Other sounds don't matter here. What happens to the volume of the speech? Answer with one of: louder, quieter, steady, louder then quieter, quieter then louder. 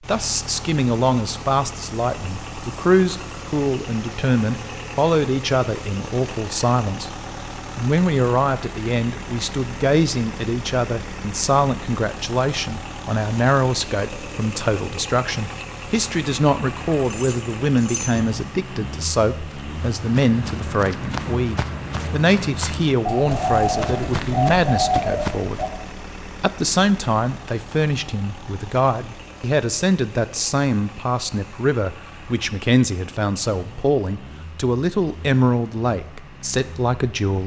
steady.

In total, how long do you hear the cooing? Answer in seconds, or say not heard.
3 s.